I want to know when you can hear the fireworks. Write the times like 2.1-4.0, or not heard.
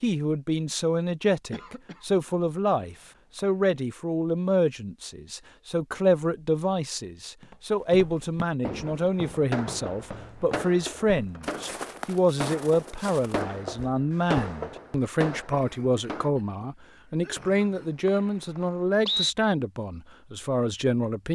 8.7-16.3.